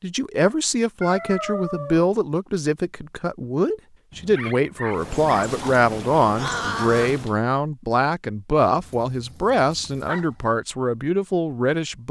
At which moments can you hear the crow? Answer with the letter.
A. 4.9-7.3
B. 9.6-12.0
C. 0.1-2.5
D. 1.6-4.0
A.